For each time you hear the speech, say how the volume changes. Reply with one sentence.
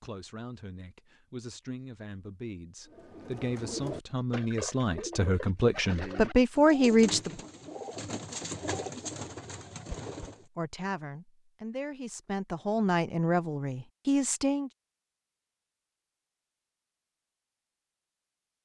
The speech can be heard from 0.0 to 7.3 s, getting louder; and from 10.6 to 14.7 s, getting louder.